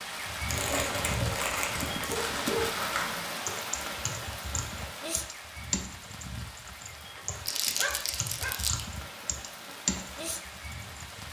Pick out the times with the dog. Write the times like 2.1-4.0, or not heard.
0.7-2.6, 7.2-8.7.